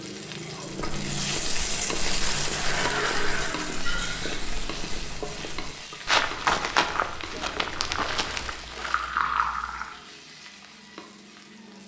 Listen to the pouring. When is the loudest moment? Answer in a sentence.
The loudest moment of the pouring is at 9 seconds.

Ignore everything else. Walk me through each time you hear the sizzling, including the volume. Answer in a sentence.
The sizzling can be heard from 0.0 to 11.8 s, getting quieter.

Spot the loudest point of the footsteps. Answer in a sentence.
The volume of the footsteps peaks at 7 seconds.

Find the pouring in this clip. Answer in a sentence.
The pouring can be heard from 3.8 to 4.5 s and from 8.4 to 9.9 s.